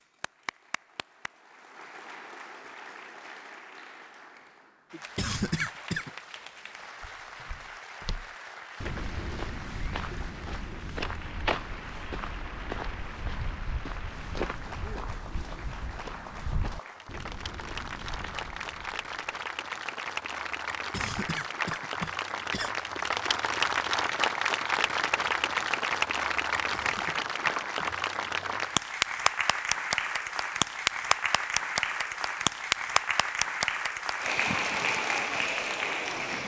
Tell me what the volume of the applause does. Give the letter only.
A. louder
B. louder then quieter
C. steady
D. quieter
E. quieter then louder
A.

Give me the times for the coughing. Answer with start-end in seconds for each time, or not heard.
5.2-6.1, 20.9-22.7, 26.7-27.9.